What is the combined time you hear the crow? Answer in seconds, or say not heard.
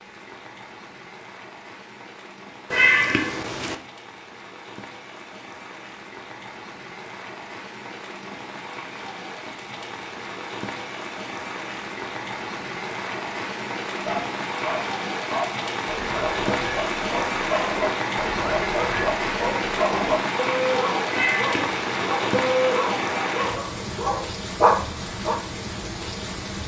not heard.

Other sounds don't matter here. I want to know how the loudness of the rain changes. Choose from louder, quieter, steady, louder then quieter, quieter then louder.
louder.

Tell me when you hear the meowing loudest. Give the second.
3 s.